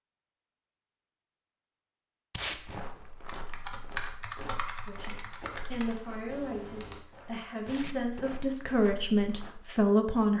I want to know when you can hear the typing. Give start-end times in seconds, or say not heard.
3.2-7.0.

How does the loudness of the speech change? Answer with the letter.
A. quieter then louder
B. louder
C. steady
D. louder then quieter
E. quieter
B.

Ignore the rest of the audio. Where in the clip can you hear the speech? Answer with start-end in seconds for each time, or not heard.
4.8-10.3.